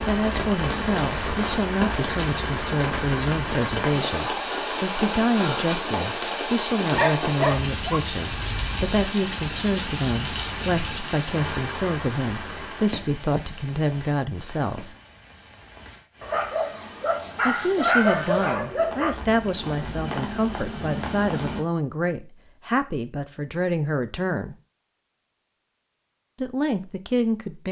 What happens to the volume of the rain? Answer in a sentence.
The loudness of the rain goes down, then up.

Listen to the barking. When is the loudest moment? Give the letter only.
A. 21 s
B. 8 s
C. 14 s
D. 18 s
D.